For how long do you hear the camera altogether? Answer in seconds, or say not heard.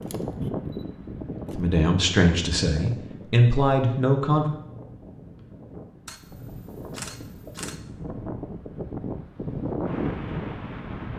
3 s.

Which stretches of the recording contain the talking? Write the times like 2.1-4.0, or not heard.
1.6-4.5.